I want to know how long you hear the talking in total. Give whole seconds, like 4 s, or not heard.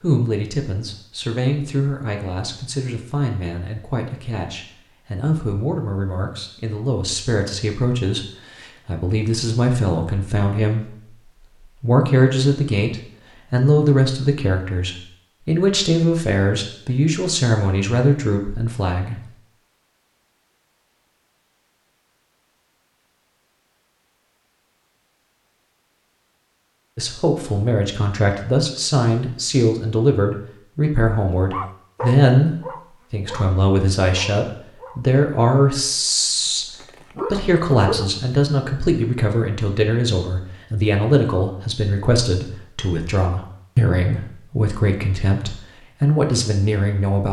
38 s.